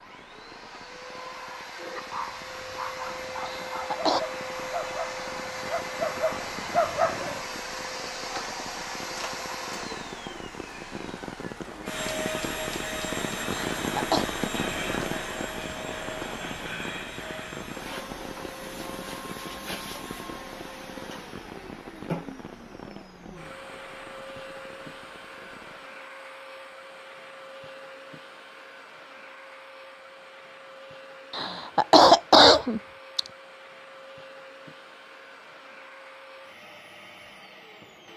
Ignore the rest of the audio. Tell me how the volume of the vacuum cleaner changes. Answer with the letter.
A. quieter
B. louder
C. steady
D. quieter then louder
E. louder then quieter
A.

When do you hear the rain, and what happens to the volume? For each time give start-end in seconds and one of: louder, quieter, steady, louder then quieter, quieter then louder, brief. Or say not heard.
0.0-25.9 louder then quieter.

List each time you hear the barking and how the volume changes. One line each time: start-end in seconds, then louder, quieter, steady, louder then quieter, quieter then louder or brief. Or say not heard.
1.8-7.4 louder.